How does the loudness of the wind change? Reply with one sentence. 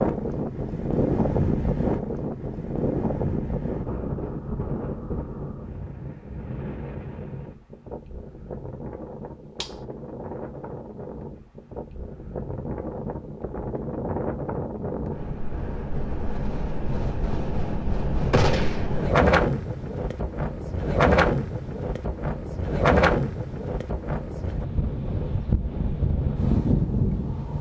The loudness of the wind goes down, then up.